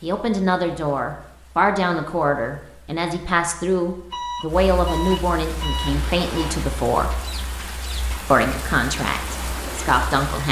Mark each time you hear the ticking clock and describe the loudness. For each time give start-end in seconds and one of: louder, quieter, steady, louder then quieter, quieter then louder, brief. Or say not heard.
not heard.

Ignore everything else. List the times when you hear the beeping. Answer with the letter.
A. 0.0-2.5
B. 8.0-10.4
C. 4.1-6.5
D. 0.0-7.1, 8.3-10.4
C.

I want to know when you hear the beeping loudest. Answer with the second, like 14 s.
5 s.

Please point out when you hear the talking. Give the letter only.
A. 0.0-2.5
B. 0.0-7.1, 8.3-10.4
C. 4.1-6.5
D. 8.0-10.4
B.